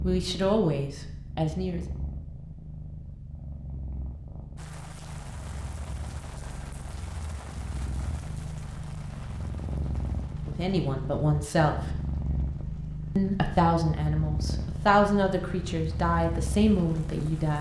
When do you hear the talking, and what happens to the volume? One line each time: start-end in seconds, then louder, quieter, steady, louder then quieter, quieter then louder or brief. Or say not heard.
0.0-1.9 brief
10.4-11.9 brief
13.2-17.5 steady.